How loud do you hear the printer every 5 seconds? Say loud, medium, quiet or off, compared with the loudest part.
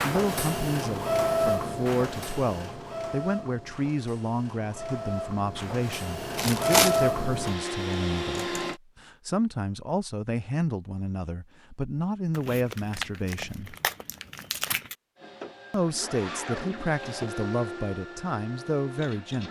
loud, loud, off, medium.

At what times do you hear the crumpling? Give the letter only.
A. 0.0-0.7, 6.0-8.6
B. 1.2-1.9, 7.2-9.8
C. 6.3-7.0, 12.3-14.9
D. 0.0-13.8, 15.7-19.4
C.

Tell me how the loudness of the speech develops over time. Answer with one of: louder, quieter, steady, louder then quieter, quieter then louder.
steady.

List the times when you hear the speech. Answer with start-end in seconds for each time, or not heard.
0.0-13.8, 15.7-19.4.